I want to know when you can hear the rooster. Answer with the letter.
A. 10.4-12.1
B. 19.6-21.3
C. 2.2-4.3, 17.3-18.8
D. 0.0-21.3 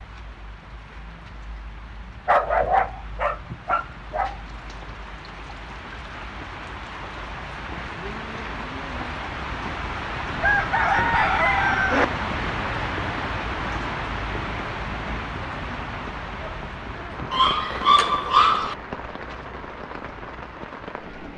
A.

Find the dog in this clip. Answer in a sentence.
The dog can be heard from 2.2 to 4.3 s and from 17.3 to 18.8 s.